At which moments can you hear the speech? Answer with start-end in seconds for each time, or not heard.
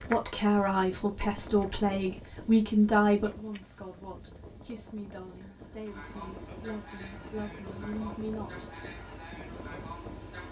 0.0-8.8.